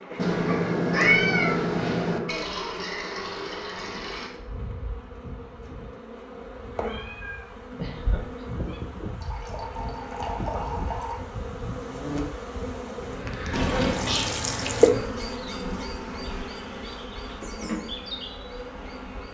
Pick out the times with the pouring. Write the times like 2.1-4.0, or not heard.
2.2-4.3, 9.2-11.2, 13.5-14.9.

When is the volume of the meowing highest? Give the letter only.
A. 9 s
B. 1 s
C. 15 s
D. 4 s
B.